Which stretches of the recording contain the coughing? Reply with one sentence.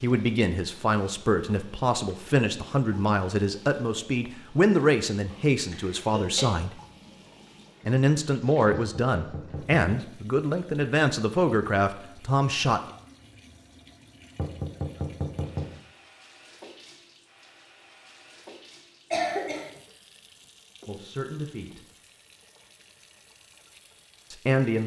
The coughing can be heard from 5.7 to 6.5 s and from 19.1 to 19.7 s.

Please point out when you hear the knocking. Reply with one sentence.
The knocking can be heard from 8.8 to 10.1 s and from 14.3 to 15.8 s.